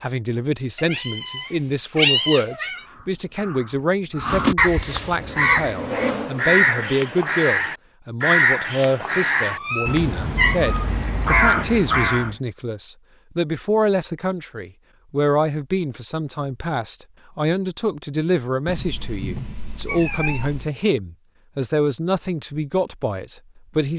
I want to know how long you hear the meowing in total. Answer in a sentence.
You can hear the meowing for 6 seconds altogether.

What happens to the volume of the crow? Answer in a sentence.
The loudness of the crow stays about the same.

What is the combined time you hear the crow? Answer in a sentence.
The crow can be heard for 10 seconds in total.